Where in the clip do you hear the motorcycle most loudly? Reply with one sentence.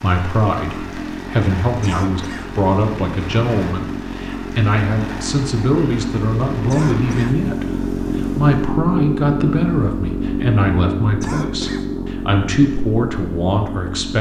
The volume of the motorcycle peaks at 9 seconds.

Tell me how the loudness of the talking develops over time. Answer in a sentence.
The volume of the talking stays about the same.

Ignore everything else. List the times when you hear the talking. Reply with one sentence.
The talking can be heard from 0.0 to 14.1 s.